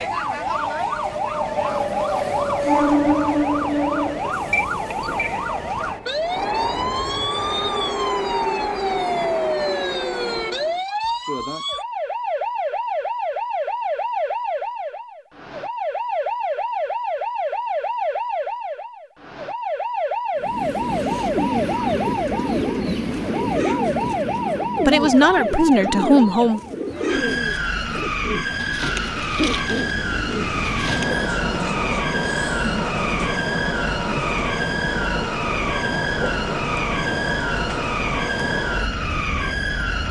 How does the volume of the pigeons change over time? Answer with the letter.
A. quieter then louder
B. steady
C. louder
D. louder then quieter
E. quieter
B.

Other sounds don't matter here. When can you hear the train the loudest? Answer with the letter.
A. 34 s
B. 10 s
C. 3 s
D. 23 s
C.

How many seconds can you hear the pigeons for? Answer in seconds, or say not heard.
10 s.